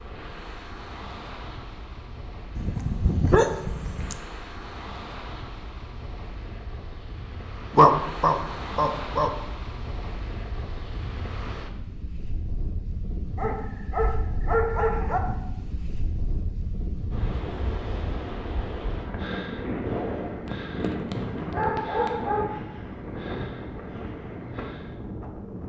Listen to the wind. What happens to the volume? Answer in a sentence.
The loudness of the wind goes up.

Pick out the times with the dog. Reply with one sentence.
You can hear the dog from 2.5 to 4.2 s, from 7.8 to 9.3 s, from 13.3 to 15.2 s and from 20.4 to 22.4 s.